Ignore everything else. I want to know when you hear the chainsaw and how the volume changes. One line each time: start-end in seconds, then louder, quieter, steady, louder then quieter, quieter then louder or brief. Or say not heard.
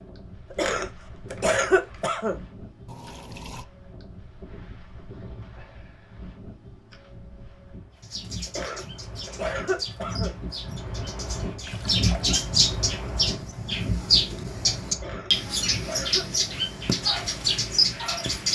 not heard.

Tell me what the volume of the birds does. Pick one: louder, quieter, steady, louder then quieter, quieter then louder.
louder.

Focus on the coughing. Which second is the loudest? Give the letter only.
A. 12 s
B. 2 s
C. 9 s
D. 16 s
B.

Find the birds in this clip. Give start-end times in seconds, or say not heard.
8.0-18.5.